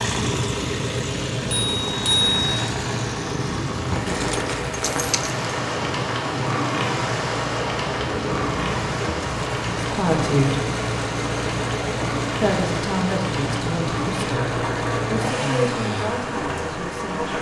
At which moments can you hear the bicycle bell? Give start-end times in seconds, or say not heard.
1.4-2.6.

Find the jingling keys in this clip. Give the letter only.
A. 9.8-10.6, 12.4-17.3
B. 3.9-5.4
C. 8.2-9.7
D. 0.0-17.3
B.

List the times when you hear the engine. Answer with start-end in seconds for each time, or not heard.
0.0-17.3.